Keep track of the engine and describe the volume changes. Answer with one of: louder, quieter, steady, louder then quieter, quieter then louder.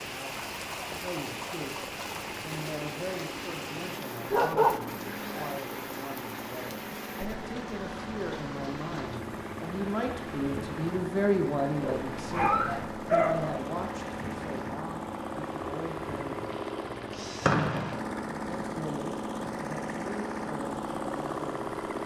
louder.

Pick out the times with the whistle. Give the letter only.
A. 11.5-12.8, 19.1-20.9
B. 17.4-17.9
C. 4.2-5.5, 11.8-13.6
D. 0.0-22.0
B.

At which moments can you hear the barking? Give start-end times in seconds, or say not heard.
4.2-5.5, 11.8-13.6.